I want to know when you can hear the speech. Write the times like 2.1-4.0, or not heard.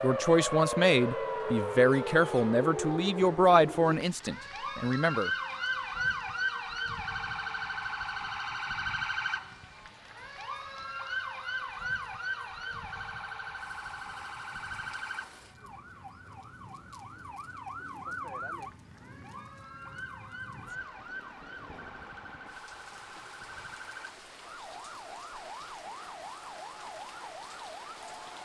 0.0-5.3.